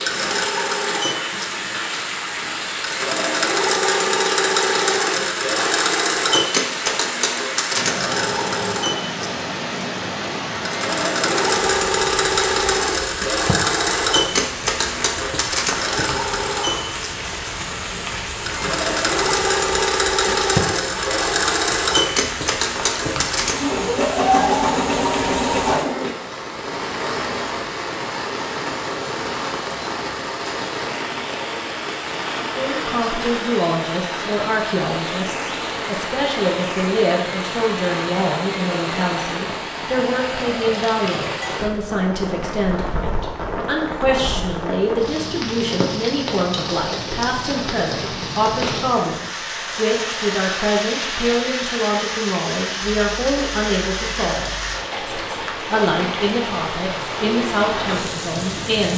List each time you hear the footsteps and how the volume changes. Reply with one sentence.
The footsteps can't be heard in this clip.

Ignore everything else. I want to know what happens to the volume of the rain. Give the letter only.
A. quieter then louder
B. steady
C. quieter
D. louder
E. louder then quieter
B.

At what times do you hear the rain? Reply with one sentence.
You can hear the rain from 0.0 to 58.9 s.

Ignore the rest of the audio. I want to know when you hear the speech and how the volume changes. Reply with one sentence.
The speech can be heard from 32.4 to 58.9 s, at a steady volume.